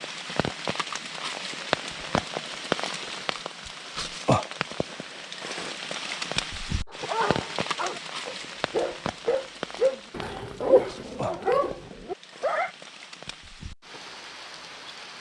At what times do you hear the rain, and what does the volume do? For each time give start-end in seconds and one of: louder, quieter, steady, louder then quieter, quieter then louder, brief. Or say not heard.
0.0-15.1 quieter.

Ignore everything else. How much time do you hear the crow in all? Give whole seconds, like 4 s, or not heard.
not heard.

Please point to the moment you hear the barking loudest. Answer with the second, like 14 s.
11 s.